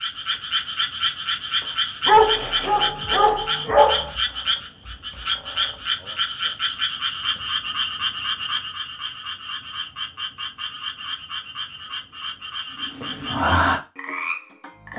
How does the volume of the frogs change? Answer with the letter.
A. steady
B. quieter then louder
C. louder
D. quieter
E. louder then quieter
B.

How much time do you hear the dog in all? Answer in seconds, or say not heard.
2 s.